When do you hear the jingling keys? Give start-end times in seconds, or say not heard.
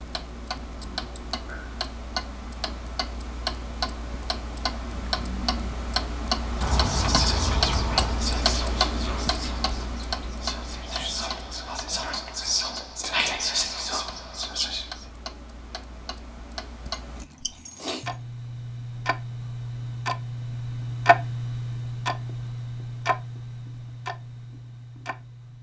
6.6-8.2, 16.9-18.1.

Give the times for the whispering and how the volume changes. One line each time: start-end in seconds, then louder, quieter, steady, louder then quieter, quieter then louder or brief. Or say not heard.
6.7-15.1 quieter then louder.